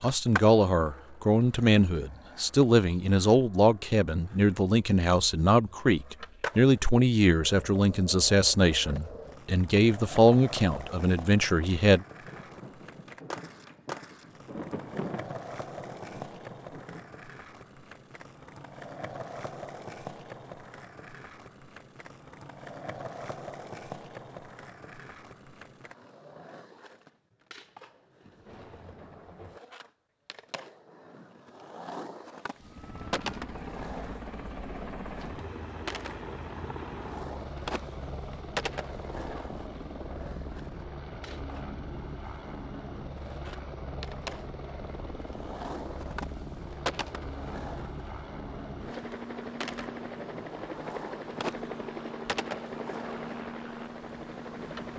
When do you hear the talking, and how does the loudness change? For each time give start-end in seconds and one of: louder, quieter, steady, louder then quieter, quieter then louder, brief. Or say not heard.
0.0-12.1 steady.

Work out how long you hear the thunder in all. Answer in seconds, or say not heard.
6 s.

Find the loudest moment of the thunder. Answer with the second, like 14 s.
15 s.